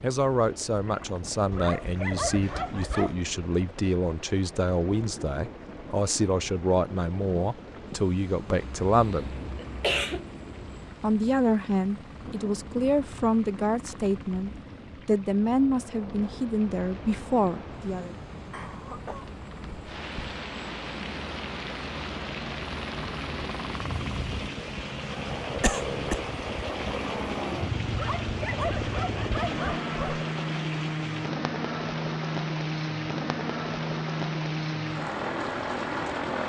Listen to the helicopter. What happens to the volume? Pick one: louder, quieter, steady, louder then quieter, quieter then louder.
louder.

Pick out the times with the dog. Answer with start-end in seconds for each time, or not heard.
1.5-3.2, 27.9-30.2.